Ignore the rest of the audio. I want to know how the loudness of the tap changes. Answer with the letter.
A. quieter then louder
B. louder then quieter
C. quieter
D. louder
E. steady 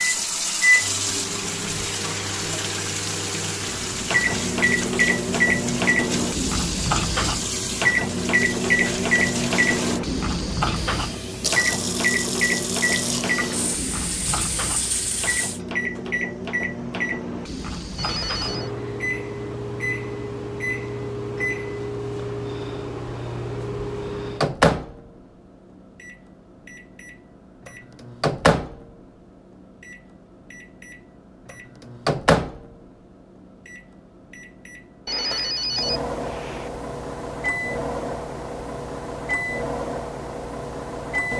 E.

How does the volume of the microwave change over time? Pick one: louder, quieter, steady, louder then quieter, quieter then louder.
quieter.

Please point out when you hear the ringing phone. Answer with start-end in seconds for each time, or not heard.
17.9-18.7, 35.0-36.7.